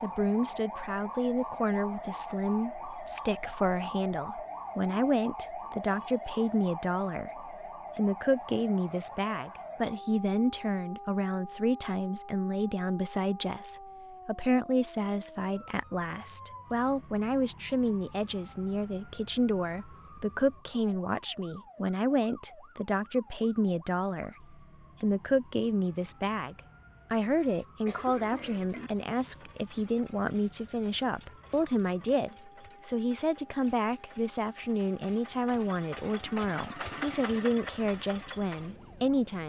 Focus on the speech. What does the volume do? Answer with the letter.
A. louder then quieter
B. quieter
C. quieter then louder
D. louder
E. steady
E.